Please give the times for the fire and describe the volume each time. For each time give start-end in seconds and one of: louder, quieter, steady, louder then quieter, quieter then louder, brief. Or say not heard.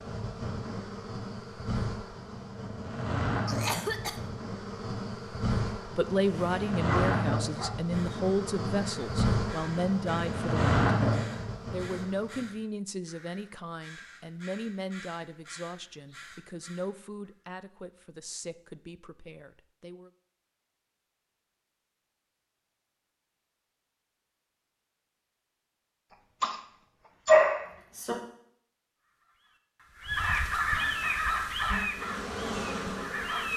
not heard.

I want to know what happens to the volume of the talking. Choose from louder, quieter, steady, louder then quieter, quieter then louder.
quieter.